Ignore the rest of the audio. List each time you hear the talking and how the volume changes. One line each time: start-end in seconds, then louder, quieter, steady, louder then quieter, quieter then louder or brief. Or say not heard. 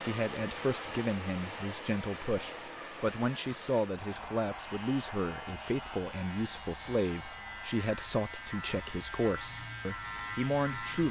0.0-11.0 steady.